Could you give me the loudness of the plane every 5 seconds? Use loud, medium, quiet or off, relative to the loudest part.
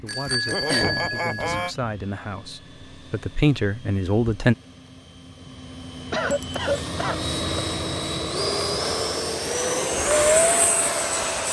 quiet, medium, loud.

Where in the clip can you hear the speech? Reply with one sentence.
You can hear the speech from 0.0 to 4.5 s.